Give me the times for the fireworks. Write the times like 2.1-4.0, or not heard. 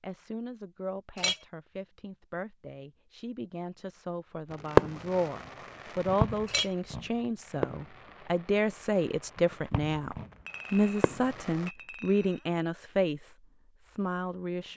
4.5-11.7.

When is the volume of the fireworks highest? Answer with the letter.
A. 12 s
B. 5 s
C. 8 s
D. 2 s
B.